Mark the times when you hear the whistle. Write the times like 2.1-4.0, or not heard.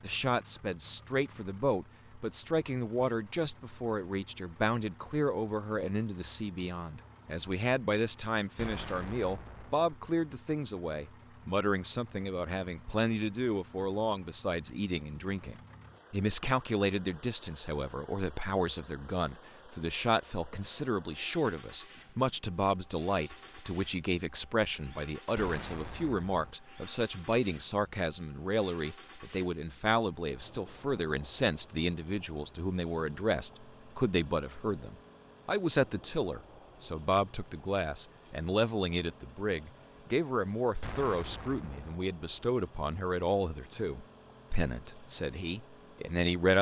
not heard.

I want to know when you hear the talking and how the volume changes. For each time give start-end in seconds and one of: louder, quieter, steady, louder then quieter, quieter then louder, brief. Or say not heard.
0.0-46.5 steady.